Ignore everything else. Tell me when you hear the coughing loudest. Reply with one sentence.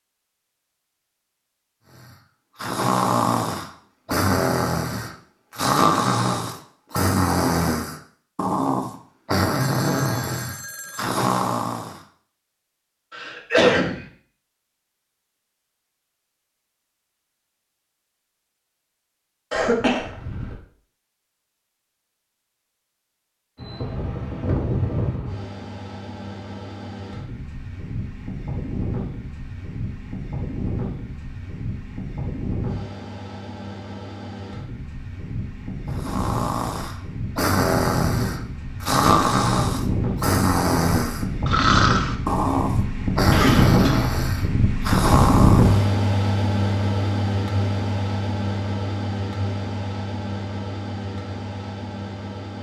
The loudest moment of the coughing is at 14 seconds.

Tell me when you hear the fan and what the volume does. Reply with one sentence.
You can hear the fan from 23.6 to 52.5 s, getting louder then quieter.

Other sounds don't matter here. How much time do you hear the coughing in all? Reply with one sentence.
The coughing can be heard for 3 seconds in total.